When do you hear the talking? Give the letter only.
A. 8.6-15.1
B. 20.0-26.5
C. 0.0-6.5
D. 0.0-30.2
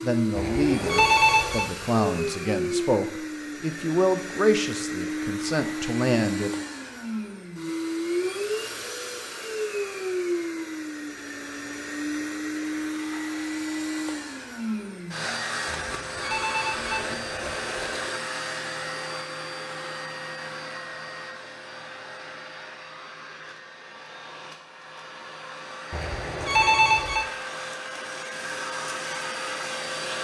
C.